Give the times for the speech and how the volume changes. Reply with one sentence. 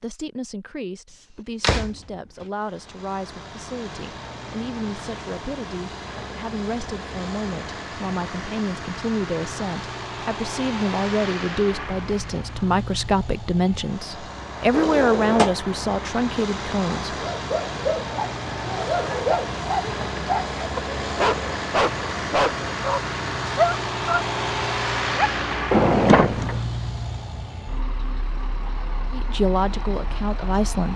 The speech can be heard from 0.0 to 17.1 s, getting louder; and briefly from 29.1 to 30.9 s.